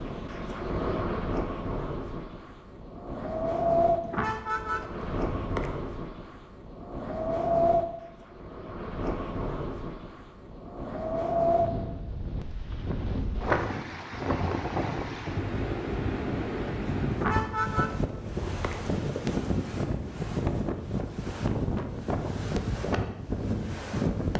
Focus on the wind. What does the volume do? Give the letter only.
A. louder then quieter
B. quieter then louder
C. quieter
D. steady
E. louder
D.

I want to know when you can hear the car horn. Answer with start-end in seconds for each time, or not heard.
4.0-5.8, 17.1-18.9.